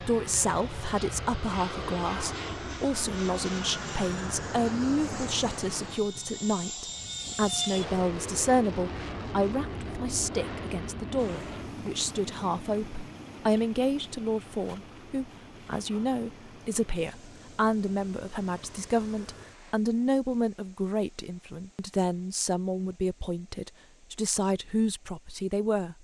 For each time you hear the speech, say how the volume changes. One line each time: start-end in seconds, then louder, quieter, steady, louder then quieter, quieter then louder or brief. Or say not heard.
0.0-25.9 steady.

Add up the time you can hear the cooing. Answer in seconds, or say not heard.
not heard.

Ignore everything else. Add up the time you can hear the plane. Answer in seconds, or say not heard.
20 s.